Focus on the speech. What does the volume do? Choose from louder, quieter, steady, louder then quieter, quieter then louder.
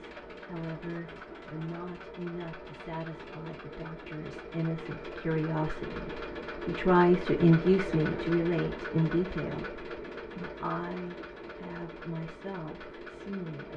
louder then quieter.